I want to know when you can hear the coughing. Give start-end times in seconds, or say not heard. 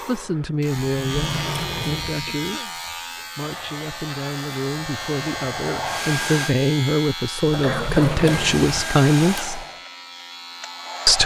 2.2-2.8, 7.5-8.5.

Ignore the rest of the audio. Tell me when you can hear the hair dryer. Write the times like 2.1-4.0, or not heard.
3.4-6.5, 8.2-11.2.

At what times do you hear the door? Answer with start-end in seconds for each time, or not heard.
0.9-2.6, 7.7-8.9.